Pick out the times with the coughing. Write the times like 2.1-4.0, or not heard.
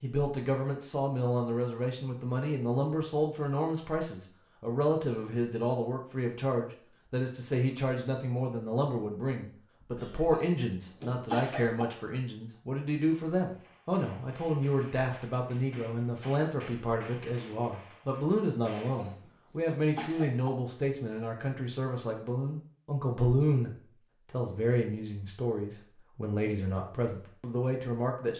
9.9-11.8, 18.9-20.5.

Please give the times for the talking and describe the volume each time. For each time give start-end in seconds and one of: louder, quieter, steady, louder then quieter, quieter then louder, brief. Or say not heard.
0.0-28.3 steady.